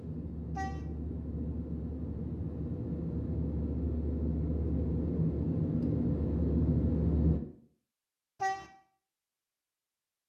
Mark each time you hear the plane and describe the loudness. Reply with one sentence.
You can hear the plane from 0.0 to 7.4 s, getting louder.